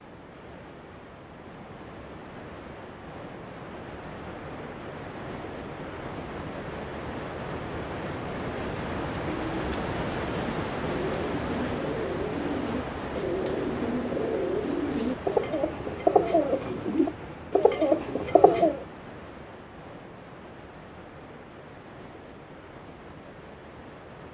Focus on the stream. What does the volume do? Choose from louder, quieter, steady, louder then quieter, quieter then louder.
louder then quieter.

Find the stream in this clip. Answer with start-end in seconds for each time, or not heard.
0.0-24.2.